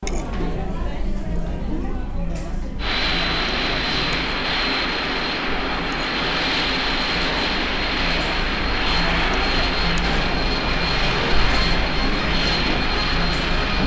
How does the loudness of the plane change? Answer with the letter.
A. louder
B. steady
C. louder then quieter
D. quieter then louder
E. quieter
B.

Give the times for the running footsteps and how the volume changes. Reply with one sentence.
The running footsteps can't be heard in this clip.